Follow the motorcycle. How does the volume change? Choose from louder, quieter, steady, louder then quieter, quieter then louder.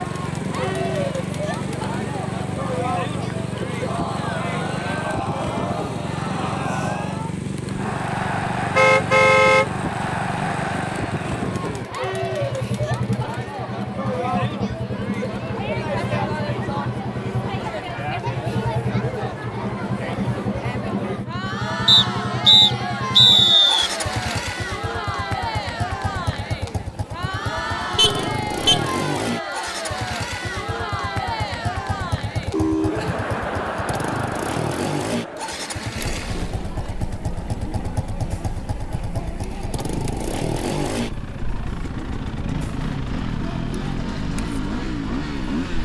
steady.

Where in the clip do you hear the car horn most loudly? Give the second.
9 s.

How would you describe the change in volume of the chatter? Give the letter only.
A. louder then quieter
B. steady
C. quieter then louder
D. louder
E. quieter
E.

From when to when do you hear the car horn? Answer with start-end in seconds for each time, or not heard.
8.8-9.7, 27.9-28.8, 32.2-33.1.